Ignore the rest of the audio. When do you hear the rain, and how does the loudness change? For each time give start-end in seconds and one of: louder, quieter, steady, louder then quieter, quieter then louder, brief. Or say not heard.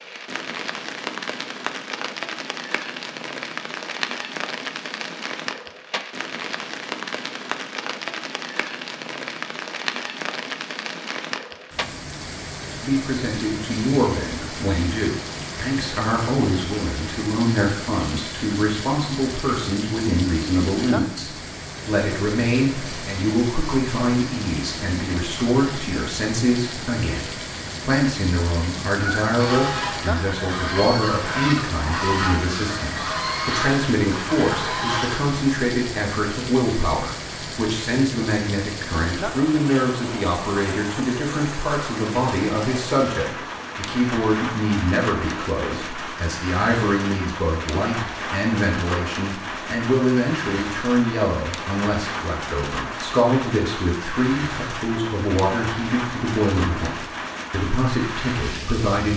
0.0-59.1 steady.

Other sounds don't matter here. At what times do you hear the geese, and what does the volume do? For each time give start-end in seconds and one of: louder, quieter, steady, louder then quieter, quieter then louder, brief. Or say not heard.
29.1-35.4 steady.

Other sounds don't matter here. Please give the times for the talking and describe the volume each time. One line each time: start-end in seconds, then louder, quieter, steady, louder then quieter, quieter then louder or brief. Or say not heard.
12.8-59.1 steady.